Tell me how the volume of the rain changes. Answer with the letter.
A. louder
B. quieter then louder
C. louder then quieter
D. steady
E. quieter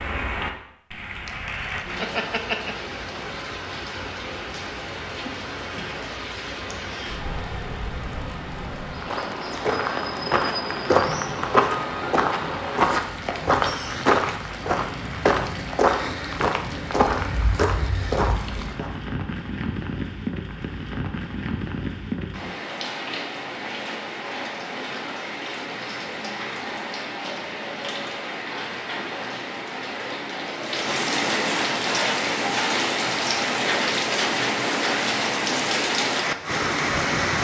A.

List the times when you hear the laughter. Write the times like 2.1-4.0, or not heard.
1.2-2.8.